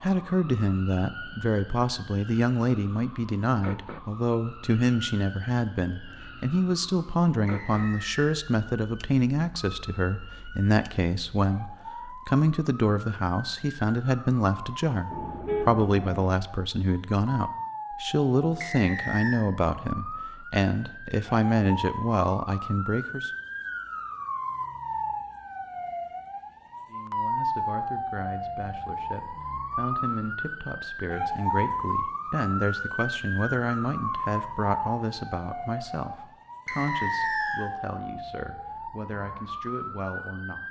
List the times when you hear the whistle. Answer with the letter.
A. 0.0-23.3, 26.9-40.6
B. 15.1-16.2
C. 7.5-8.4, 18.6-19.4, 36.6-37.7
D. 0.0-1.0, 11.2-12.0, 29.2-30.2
C.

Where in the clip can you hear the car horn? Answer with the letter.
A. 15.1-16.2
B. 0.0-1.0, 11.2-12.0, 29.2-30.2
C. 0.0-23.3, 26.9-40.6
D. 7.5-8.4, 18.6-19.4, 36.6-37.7
A.